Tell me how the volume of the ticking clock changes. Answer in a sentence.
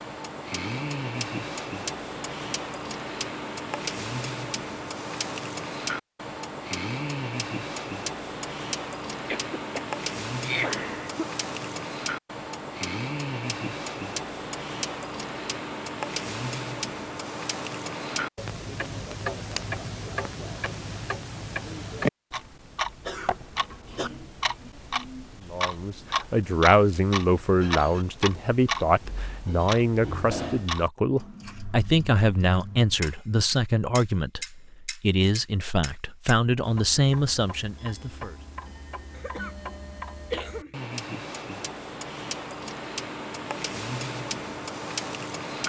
The volume of the ticking clock stays about the same.